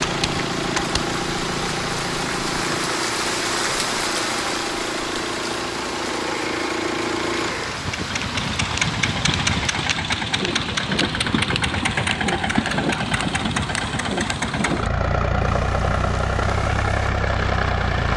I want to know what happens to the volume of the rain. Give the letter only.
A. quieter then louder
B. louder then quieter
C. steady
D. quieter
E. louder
D.